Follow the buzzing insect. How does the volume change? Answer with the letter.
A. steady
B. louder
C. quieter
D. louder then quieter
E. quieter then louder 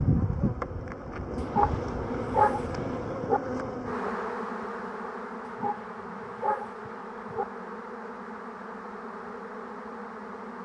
C.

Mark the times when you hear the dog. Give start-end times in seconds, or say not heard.
1.5-3.4, 5.5-7.5.